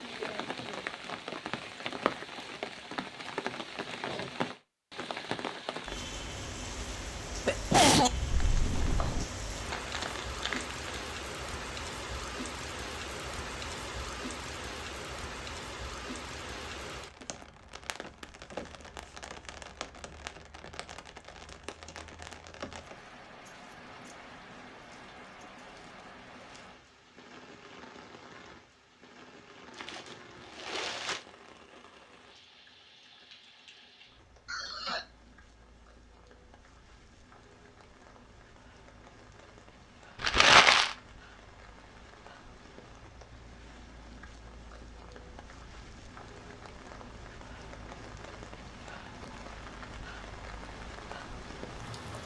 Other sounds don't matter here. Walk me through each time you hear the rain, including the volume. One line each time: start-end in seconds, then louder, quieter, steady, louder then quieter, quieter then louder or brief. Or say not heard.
0.0-52.2 quieter then louder.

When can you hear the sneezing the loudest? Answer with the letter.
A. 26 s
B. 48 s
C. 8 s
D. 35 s
C.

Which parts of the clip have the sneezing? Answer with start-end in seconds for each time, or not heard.
7.5-9.2, 34.5-35.0.